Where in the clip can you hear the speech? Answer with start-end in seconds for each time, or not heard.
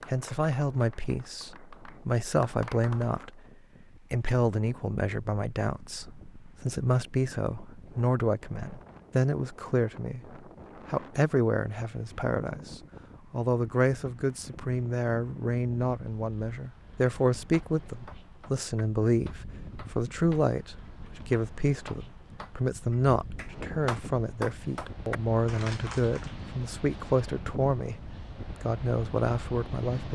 0.1-3.4, 4.1-30.1.